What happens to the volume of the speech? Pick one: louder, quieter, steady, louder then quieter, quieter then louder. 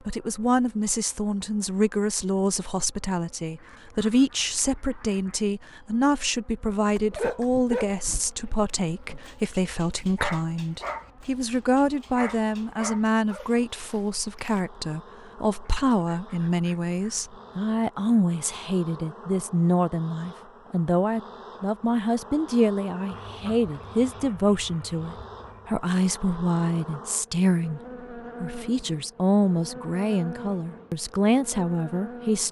steady.